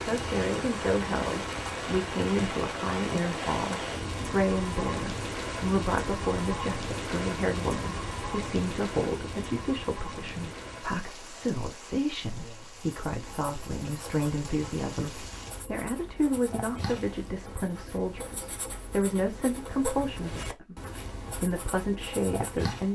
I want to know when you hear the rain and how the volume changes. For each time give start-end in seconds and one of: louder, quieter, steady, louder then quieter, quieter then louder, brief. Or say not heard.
0.0-15.7 quieter.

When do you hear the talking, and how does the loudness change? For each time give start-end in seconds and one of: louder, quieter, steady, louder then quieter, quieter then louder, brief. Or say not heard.
0.1-20.8 steady
21.4-22.9 brief.